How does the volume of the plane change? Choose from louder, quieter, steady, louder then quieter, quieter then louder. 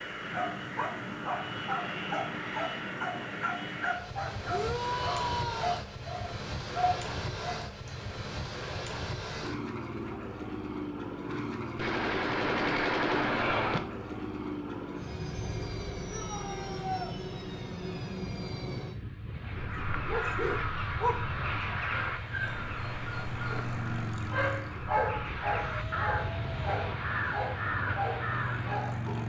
steady.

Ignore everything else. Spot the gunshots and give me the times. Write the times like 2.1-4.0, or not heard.
11.8-13.8.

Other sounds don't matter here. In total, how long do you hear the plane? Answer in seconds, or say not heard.
29 s.